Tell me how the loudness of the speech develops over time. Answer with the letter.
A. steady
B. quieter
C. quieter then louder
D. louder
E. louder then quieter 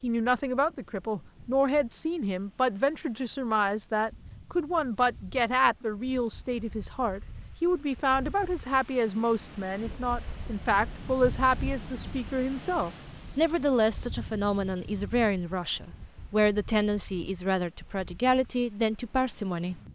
A.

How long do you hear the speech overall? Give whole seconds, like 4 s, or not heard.
20 s.